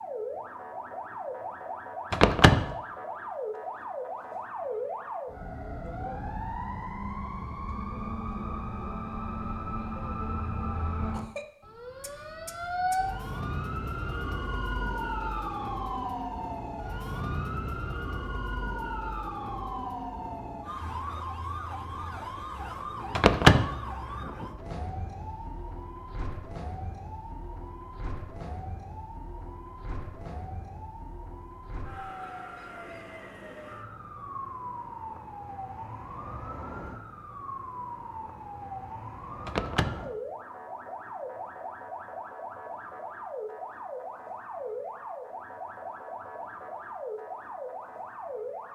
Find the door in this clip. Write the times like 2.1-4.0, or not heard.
2.1-2.7, 23.1-23.8, 39.5-40.0.